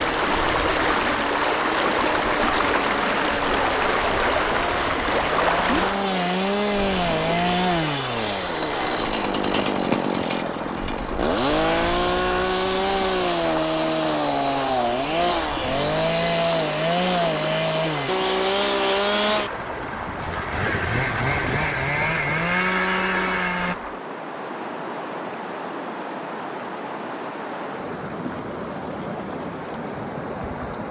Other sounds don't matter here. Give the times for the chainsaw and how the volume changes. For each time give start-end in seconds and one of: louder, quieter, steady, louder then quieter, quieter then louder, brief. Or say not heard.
0.0-23.8 louder.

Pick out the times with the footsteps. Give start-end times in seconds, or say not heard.
not heard.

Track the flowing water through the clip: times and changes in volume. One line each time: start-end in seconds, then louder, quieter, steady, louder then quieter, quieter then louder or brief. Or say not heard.
0.0-30.8 quieter.